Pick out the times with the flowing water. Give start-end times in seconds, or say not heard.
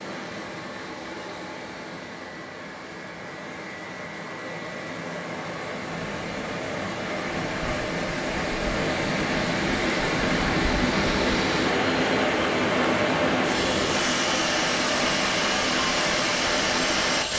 0.0-17.3.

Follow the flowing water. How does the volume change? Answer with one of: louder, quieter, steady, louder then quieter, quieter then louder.
louder.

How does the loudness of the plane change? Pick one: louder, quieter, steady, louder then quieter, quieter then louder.
louder.